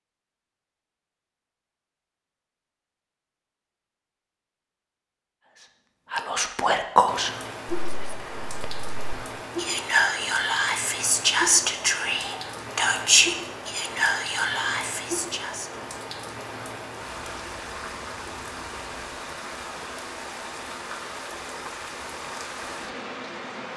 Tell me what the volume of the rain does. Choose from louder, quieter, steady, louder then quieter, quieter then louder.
steady.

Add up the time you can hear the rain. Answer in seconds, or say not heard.
17 s.